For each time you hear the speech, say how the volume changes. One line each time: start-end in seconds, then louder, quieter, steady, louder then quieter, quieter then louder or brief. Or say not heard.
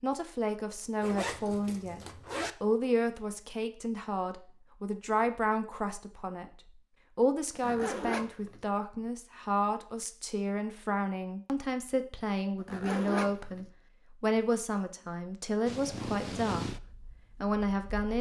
0.0-2.0 brief
2.6-18.1 steady.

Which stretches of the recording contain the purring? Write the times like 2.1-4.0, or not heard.
15.7-18.1.